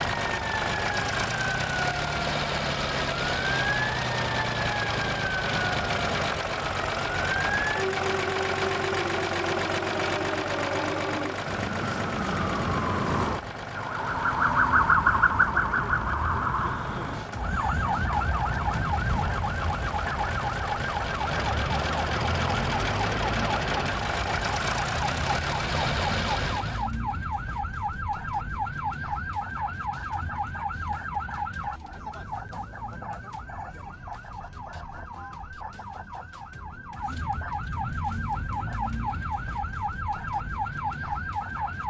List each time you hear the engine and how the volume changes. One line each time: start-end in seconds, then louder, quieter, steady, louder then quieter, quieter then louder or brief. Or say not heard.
0.0-26.9 quieter then louder.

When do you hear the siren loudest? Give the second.
15 s.